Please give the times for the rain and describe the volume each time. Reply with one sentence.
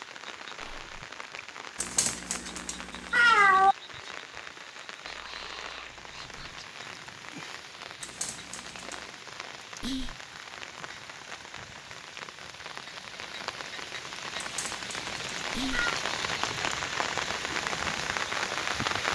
The rain can be heard from 0.0 to 19.1 s, getting louder.